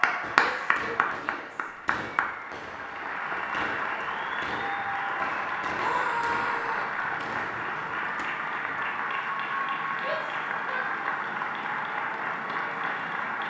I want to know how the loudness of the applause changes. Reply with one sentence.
The volume of the applause stays about the same.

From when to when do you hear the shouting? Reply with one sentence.
You can hear the shouting from 0.4 to 1.7 s, from 5.7 to 6.9 s and from 10.0 to 10.8 s.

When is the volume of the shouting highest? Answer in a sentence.
The loudest moment of the shouting is at 6 seconds.